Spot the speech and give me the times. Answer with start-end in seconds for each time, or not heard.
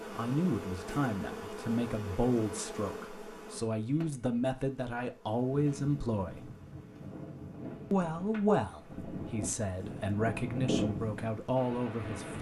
0.1-6.5, 7.9-12.3.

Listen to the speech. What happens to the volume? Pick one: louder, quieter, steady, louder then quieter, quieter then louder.
steady.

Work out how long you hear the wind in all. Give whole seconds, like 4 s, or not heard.
7 s.